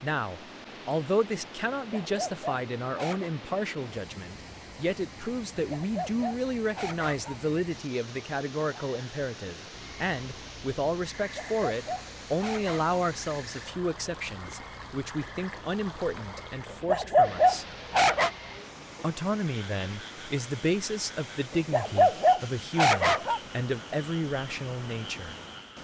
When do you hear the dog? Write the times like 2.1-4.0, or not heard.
1.9-3.3, 5.5-7.3, 11.2-13.0, 16.7-18.3, 21.5-23.4.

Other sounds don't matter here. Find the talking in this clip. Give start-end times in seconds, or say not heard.
0.0-17.6, 19.0-25.4.